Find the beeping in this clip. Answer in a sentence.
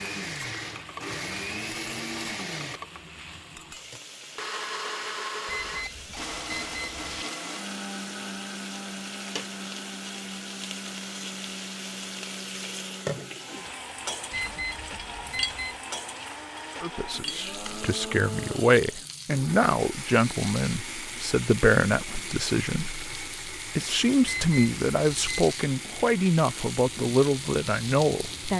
You can hear the beeping from 5.5 to 7.2 s, from 14.3 to 15.8 s and from 24.2 to 25.4 s.